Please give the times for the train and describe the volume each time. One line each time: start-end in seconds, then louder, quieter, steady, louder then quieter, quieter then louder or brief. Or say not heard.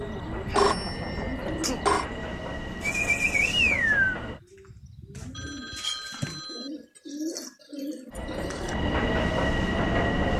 0.0-4.4 steady
8.1-10.3 brief.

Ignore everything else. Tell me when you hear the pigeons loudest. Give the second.
4 s.